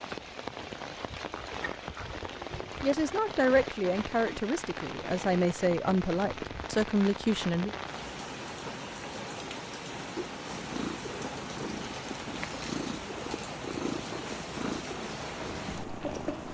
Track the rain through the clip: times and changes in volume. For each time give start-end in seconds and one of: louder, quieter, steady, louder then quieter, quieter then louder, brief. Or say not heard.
0.0-16.4 steady.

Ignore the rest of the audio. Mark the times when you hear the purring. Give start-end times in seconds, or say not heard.
10.4-16.4.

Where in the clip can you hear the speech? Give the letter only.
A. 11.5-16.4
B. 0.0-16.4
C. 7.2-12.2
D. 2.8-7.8
D.